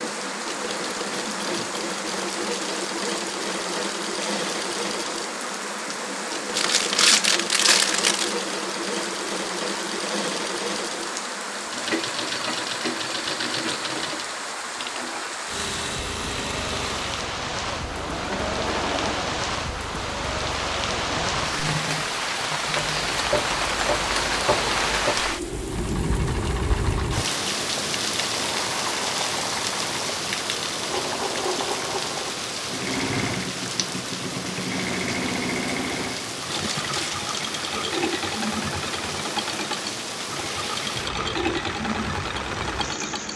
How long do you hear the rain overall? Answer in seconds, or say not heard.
43 s.